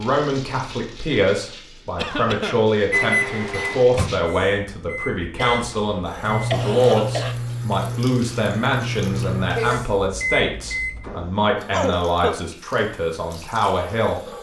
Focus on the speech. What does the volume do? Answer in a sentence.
The loudness of the speech stays about the same.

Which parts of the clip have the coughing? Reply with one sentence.
The coughing can be heard from 1.9 to 2.6 s, from 5.3 to 7.3 s and from 11.1 to 12.4 s.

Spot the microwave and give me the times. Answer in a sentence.
You can hear the microwave from 2.9 to 11.3 s.